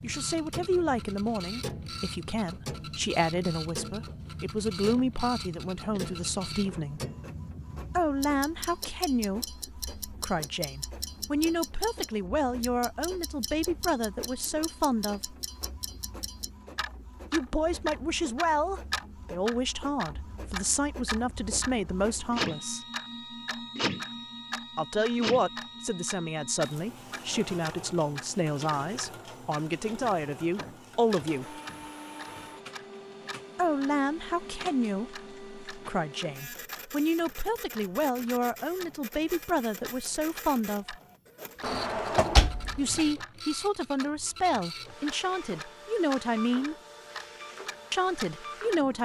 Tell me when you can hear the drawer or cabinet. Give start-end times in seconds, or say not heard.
41.6-43.1.